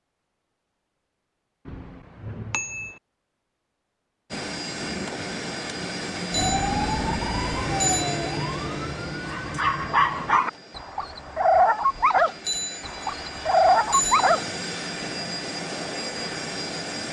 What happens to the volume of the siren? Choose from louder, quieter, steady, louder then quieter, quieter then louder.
quieter.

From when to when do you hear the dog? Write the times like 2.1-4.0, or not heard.
9.2-14.4.